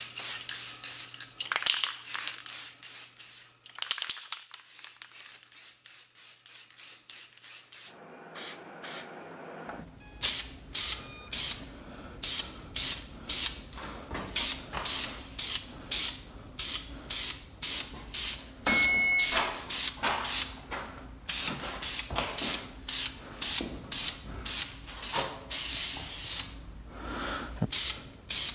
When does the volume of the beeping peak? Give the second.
19 s.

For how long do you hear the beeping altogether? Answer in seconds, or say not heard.
3 s.